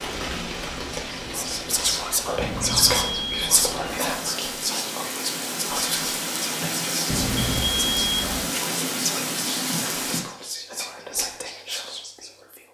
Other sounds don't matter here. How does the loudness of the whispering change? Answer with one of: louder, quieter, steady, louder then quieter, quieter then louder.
quieter.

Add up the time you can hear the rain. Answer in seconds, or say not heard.
10 s.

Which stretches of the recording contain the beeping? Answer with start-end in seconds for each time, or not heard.
2.4-3.5, 7.1-8.5.